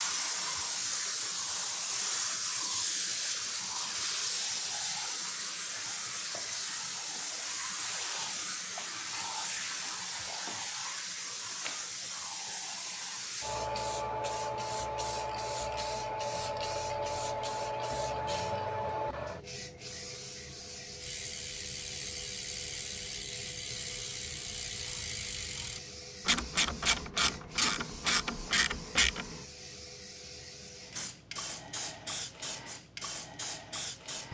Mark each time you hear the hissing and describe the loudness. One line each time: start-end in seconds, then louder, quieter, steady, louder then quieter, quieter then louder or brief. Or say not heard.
0.0-34.2 quieter.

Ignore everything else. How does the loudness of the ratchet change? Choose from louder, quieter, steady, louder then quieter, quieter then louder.
louder.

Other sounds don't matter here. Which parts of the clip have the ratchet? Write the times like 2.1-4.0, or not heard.
20.9-29.4.